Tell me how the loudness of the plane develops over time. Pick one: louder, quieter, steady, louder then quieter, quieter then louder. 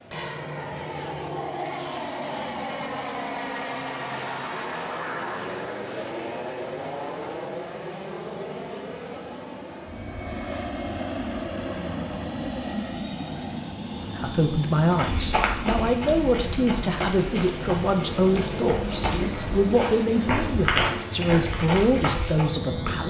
steady.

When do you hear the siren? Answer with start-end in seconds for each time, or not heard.
not heard.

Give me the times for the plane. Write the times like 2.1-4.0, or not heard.
0.0-23.0.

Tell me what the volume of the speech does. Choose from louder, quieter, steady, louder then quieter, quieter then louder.
steady.